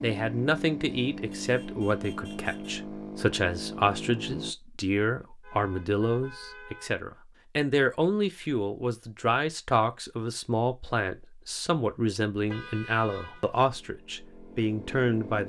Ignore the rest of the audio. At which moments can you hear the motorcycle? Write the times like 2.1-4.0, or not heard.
0.0-4.5, 13.7-15.4.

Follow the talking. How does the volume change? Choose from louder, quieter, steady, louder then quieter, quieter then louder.
steady.